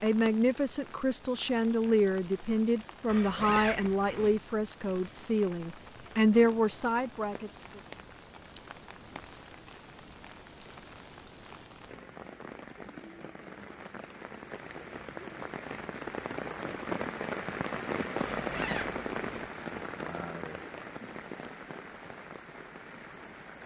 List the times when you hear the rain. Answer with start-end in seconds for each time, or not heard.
0.0-23.6.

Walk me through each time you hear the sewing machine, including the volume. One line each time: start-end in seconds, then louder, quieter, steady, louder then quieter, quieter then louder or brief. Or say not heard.
not heard.